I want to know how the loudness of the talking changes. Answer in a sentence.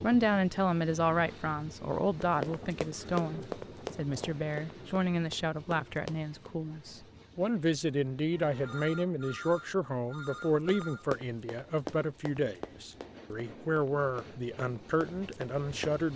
The loudness of the talking stays about the same.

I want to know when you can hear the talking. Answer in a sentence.
You can hear the talking from 0.0 to 16.1 s.